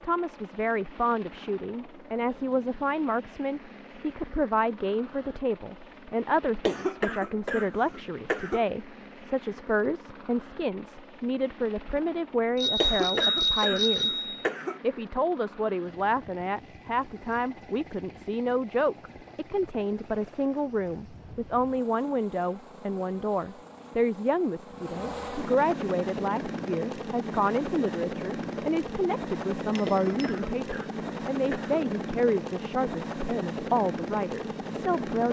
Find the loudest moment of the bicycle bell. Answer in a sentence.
The volume of the bicycle bell peaks at 13 seconds.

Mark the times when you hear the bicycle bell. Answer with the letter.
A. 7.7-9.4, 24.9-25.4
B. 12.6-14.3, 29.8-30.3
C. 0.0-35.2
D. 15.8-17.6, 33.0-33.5
B.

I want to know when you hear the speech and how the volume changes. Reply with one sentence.
You can hear the speech from 0.0 to 35.2 s, at a steady volume.